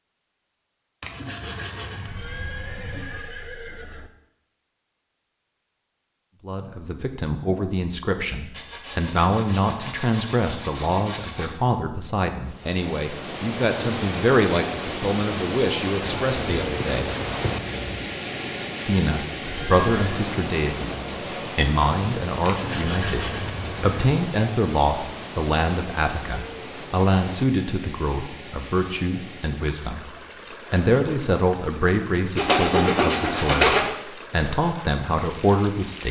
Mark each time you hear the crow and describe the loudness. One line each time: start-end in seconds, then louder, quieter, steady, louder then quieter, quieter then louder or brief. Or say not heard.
not heard.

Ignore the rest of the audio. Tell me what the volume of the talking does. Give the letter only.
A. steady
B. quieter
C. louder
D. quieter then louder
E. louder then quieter
A.